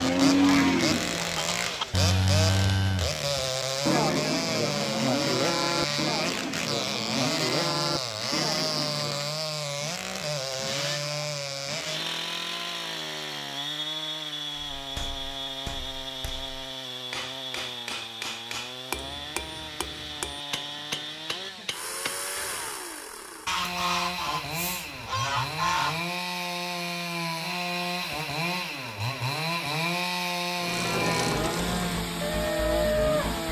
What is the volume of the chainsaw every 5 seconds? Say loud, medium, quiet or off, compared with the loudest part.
loud, loud, loud, medium, medium, loud, loud.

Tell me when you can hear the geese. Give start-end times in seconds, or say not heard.
23.4-26.0.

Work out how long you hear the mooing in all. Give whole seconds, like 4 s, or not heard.
12 s.